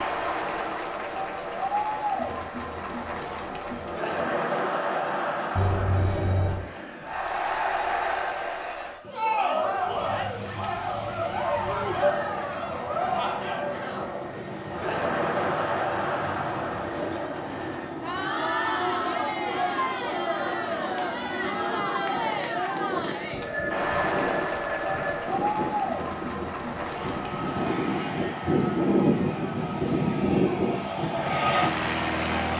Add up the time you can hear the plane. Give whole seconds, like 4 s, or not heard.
23 s.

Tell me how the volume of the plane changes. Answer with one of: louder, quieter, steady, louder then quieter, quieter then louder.
louder.